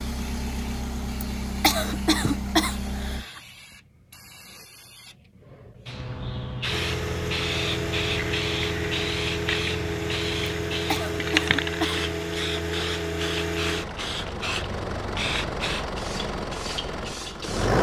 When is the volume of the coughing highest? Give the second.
2 s.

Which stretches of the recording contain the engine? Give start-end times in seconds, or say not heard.
0.0-3.2, 6.7-17.7.